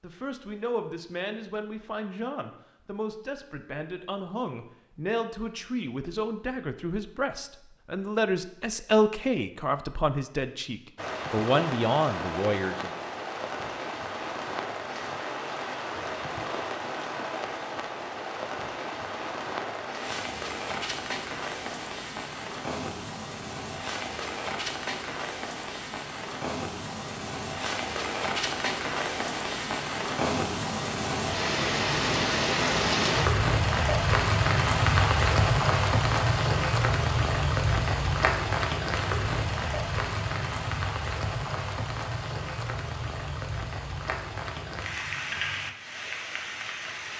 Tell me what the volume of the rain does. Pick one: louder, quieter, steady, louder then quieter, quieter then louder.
louder then quieter.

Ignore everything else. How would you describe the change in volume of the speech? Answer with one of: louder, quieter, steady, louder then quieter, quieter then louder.
louder.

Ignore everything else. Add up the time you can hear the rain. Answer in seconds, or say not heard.
36 s.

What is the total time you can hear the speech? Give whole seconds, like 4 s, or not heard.
13 s.